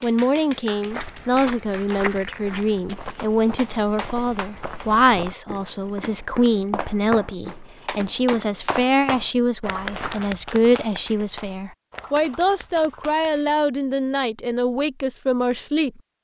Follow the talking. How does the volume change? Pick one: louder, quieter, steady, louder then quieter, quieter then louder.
steady.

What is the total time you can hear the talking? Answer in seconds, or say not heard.
16 s.